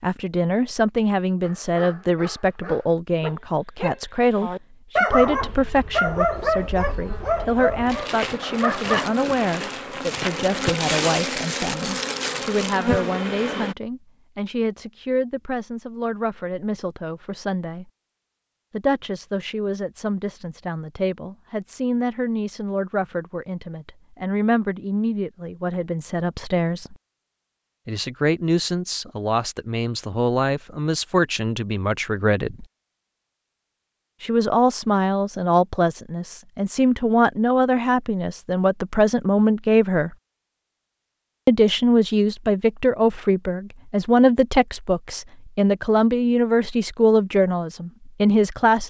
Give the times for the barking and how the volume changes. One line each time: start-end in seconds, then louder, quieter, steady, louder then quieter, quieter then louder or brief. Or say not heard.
1.4-9.2 louder then quieter.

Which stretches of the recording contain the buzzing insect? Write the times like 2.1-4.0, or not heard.
5.1-13.8.